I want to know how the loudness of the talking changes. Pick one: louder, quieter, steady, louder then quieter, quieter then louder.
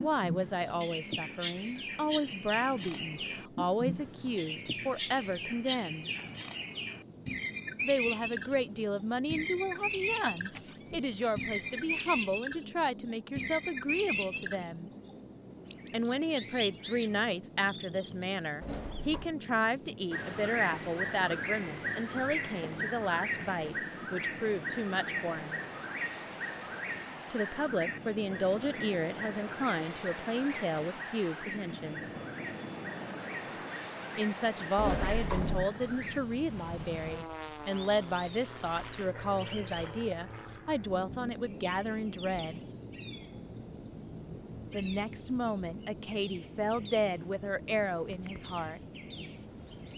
steady.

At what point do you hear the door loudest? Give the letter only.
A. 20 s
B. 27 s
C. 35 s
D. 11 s
C.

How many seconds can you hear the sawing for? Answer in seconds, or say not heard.
not heard.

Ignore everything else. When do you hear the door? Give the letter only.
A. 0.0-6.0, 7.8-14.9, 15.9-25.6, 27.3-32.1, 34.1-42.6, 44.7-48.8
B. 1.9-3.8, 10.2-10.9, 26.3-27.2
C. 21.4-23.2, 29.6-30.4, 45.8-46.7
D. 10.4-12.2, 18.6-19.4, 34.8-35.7
D.